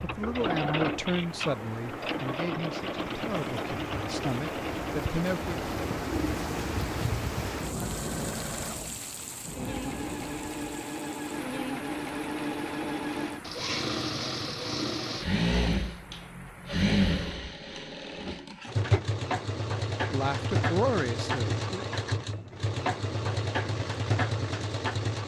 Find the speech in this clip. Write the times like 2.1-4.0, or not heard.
0.0-5.6, 20.1-21.9.